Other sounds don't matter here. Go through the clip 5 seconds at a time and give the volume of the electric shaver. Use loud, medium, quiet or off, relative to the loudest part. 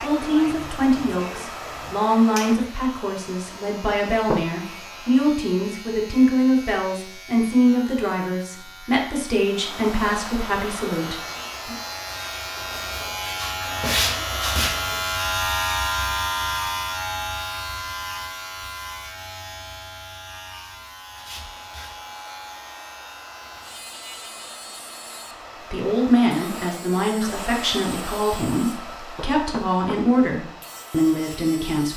quiet, quiet, loud, loud, quiet, quiet, quiet.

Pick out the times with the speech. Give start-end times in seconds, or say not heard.
0.0-11.8, 25.7-31.9.